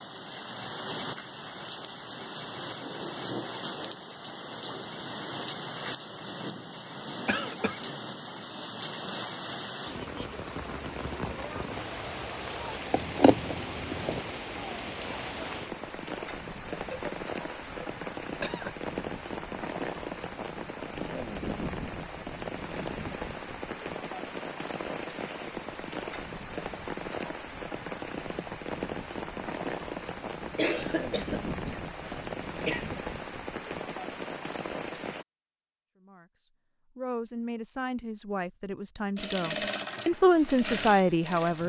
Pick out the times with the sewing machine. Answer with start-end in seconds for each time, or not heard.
39.1-41.6.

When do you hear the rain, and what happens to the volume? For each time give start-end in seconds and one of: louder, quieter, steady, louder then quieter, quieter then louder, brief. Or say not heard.
0.0-35.2 steady.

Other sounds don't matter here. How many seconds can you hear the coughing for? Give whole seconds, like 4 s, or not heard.
5 s.